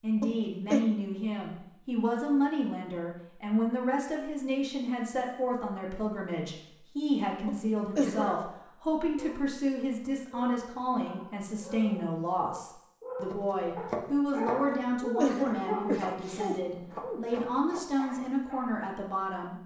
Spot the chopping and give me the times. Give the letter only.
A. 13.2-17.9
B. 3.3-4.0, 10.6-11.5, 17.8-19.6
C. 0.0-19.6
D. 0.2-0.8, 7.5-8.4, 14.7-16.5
A.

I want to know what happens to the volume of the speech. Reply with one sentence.
The loudness of the speech stays about the same.